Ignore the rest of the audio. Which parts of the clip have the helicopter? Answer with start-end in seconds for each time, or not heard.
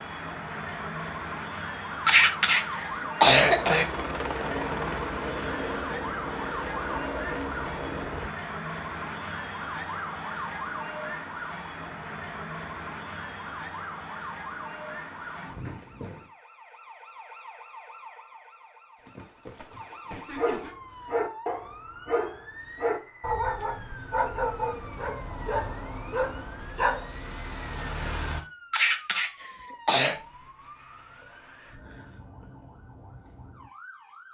3.4-8.3.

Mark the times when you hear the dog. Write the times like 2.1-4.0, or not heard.
20.4-28.4.